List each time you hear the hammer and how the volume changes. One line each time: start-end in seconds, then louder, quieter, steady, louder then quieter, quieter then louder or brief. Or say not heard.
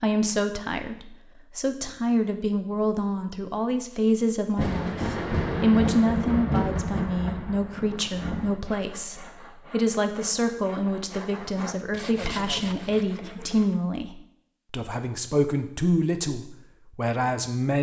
not heard.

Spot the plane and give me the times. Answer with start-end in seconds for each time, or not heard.
not heard.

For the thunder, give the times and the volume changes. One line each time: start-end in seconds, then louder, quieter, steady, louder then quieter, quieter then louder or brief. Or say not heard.
4.5-8.6 quieter.